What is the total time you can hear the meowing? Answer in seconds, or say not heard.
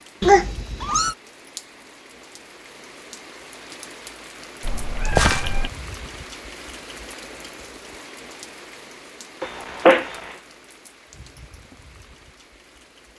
3 s.